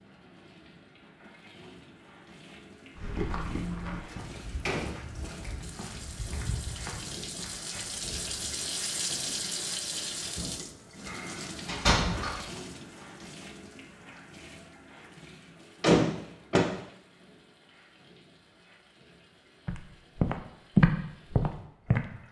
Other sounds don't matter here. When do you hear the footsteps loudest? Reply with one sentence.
The volume of the footsteps peaks at 21 seconds.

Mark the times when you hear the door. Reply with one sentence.
You can hear the door from 4.0 to 5.5 s, from 11.1 to 12.4 s and from 15.8 to 16.6 s.